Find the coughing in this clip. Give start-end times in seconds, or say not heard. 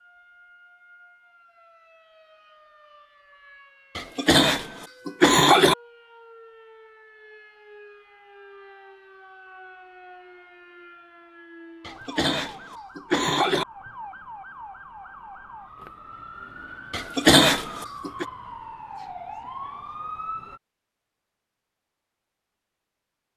4.0-5.8, 11.8-13.7, 16.9-18.2.